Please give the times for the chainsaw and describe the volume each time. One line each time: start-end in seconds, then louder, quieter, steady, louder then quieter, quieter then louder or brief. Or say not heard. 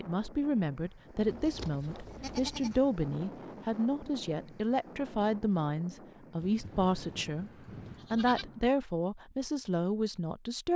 not heard.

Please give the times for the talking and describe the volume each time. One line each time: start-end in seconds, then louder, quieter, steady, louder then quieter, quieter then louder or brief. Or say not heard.
0.0-7.5 steady
8.1-10.7 brief.